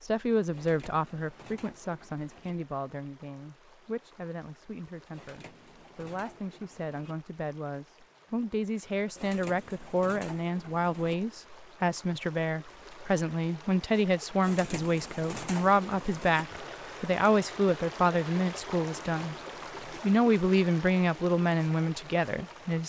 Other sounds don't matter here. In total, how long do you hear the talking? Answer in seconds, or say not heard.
22 s.